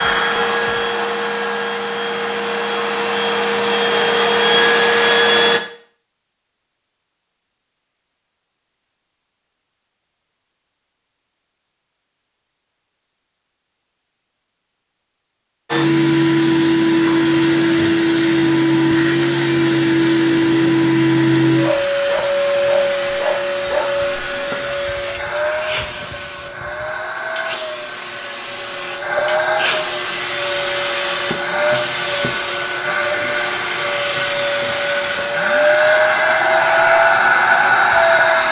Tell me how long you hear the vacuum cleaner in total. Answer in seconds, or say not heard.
28 s.